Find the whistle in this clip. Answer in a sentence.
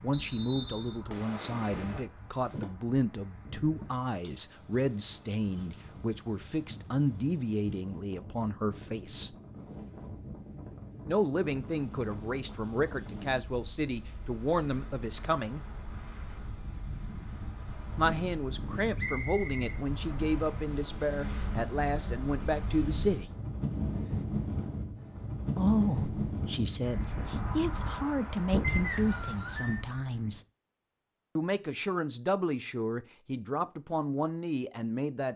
You can hear the whistle from 0.1 to 1.0 s, from 18.9 to 20.6 s and from 28.6 to 29.8 s.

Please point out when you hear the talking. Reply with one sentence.
The talking can be heard from 0.0 to 9.3 s, from 11.1 to 15.6 s, from 17.9 to 23.3 s, from 25.6 to 30.4 s and from 31.4 to 35.3 s.